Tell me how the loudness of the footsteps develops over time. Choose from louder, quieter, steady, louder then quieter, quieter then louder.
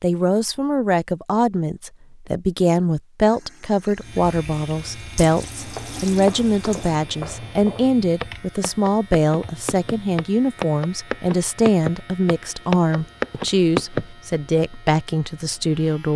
louder.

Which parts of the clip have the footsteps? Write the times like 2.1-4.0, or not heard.
5.5-14.1.